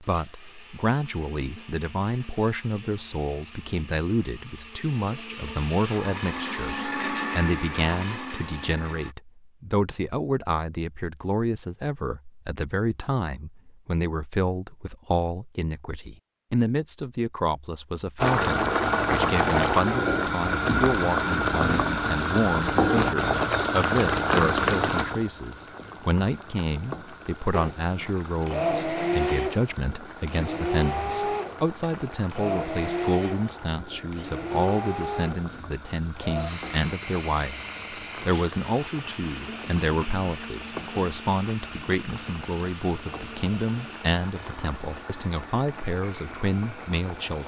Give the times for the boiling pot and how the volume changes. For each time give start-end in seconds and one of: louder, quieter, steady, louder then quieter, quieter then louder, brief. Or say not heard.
18.1-47.4 quieter.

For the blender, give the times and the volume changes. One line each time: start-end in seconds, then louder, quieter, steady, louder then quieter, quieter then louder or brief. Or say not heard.
0.0-9.2 louder
27.5-47.4 quieter.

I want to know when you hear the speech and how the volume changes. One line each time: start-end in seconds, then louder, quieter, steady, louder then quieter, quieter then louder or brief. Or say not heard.
0.0-47.4 steady.